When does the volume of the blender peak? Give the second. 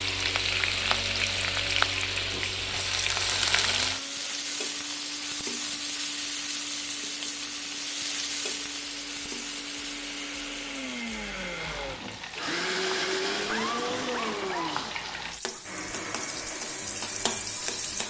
13 s.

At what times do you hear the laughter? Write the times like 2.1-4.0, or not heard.
13.4-14.8.